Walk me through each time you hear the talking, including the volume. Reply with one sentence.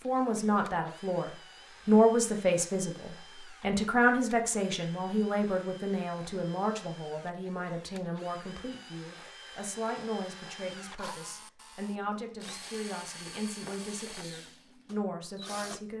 You can hear the talking from 0.0 to 15.9 s, getting quieter.